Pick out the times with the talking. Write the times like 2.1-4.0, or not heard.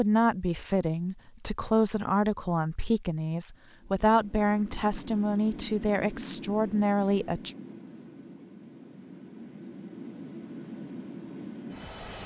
0.0-7.5.